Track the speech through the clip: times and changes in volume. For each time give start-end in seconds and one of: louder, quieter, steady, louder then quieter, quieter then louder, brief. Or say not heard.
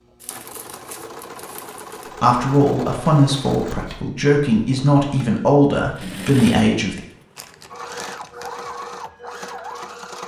2.2-7.0 quieter then louder.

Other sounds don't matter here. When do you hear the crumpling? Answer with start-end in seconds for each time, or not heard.
0.2-2.1, 7.3-8.5.